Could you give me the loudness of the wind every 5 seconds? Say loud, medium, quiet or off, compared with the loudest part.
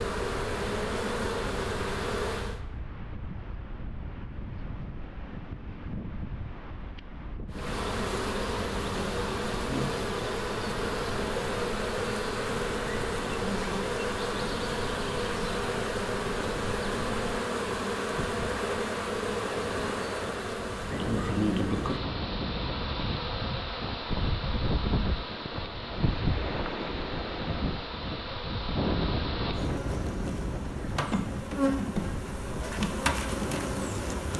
medium, medium, medium, medium, loud, loud, medium.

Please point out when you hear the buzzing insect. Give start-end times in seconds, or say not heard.
0.0-2.6, 7.5-34.3.